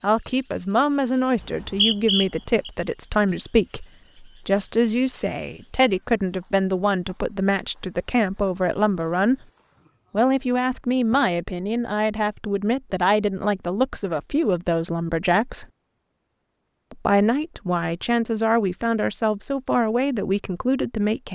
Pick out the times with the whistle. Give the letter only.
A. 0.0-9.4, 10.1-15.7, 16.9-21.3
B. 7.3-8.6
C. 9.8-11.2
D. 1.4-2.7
D.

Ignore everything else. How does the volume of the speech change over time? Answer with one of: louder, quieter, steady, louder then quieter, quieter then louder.
steady.